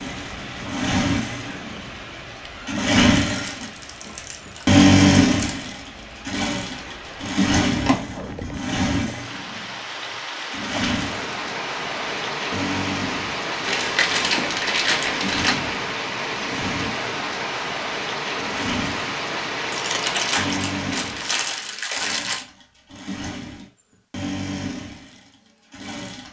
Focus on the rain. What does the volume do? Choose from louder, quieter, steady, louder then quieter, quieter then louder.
louder.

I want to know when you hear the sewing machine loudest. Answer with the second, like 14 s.
5 s.